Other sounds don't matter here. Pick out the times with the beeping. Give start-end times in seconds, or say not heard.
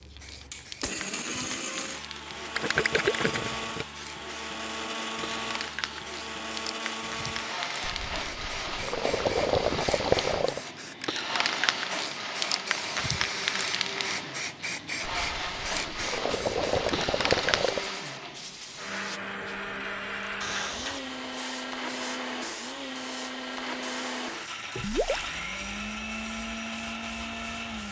not heard.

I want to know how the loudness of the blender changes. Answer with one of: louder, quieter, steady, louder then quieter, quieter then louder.
steady.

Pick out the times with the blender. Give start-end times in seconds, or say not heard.
0.0-27.8.